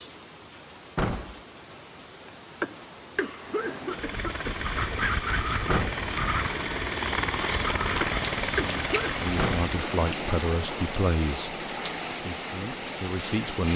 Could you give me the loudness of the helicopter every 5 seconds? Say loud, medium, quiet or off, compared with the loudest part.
medium, loud, medium.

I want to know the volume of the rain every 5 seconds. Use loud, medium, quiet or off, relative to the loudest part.
medium, loud, loud.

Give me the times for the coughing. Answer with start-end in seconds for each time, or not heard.
2.6-4.6, 8.0-9.2.